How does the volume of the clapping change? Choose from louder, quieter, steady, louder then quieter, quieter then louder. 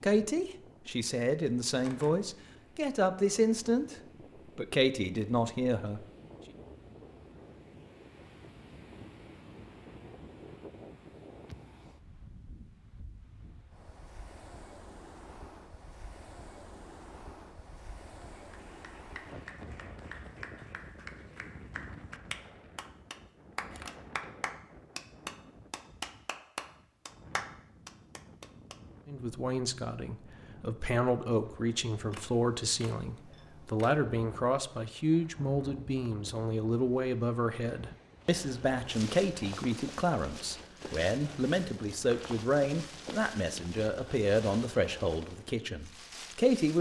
louder.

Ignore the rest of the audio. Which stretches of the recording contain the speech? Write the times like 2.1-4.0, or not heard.
0.0-6.0, 29.1-46.7.